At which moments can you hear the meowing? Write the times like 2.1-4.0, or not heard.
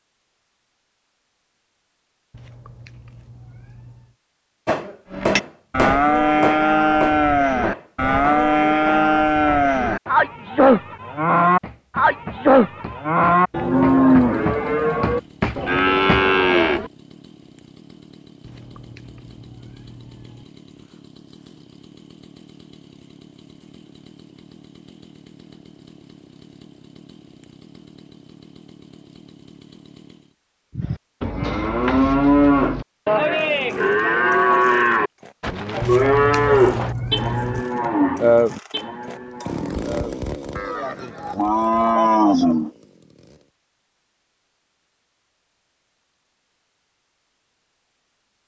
2.3-4.2, 18.4-20.4, 35.8-37.6.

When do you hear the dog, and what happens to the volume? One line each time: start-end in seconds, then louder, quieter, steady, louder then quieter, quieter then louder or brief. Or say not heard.
not heard.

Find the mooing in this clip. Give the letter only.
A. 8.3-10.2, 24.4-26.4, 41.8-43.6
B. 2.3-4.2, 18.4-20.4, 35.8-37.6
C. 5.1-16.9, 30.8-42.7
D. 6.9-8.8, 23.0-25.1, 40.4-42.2
C.